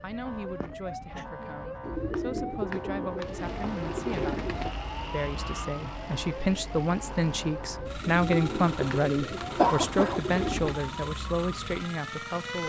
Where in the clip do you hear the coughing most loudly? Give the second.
10 s.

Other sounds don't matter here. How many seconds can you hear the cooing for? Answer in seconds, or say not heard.
6 s.